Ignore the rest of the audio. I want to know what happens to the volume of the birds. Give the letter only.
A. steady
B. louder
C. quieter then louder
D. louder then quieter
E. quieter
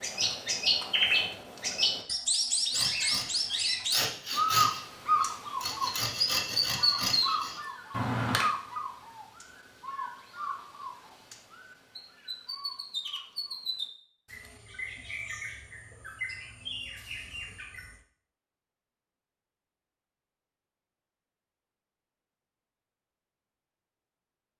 E.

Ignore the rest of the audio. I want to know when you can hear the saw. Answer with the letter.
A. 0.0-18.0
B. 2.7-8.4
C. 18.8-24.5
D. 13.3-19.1
B.